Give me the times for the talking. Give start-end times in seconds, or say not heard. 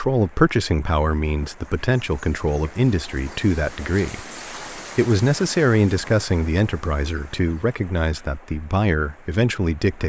0.0-10.0.